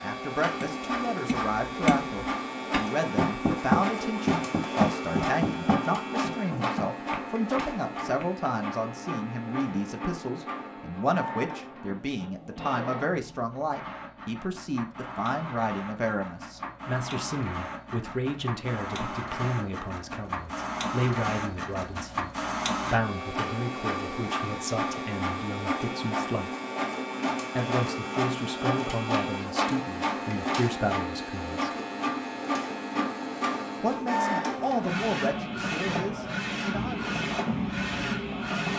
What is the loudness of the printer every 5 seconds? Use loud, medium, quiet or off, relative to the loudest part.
loud, loud, medium, medium, loud, loud, loud, loud.